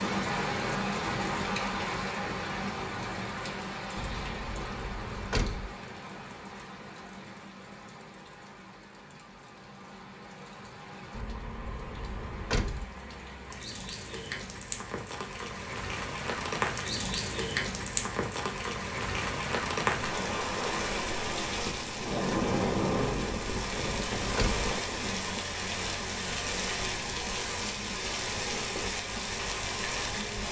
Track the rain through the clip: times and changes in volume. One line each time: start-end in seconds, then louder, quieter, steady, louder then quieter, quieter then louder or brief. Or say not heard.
0.0-30.4 quieter then louder.